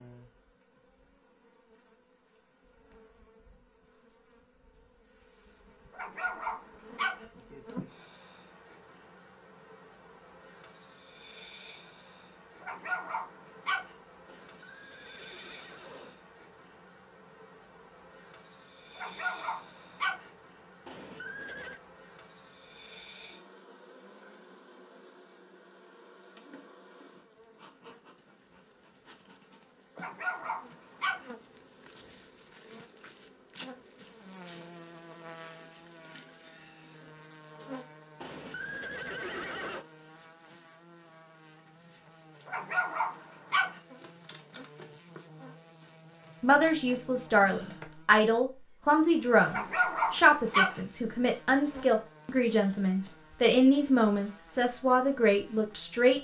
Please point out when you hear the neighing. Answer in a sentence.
The neighing can be heard from 14.2 to 16.1 s, from 20.9 to 21.8 s and from 38.2 to 39.9 s.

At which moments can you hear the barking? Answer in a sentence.
You can hear the barking from 5.9 to 7.2 s, from 12.6 to 13.9 s, from 18.9 to 20.2 s, from 29.9 to 31.3 s, from 42.5 to 43.8 s and from 49.5 to 50.8 s.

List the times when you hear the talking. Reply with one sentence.
The talking can be heard from 46.4 to 56.2 s.